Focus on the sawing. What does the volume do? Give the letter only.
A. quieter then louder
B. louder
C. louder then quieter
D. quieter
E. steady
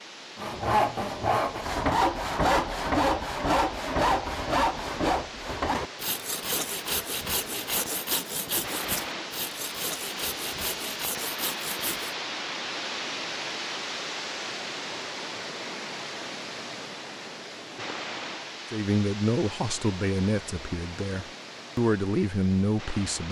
D.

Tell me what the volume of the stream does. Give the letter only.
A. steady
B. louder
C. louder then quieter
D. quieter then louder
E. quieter
C.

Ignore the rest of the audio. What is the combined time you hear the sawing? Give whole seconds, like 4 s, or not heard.
12 s.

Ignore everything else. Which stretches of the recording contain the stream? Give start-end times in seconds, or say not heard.
0.0-23.2.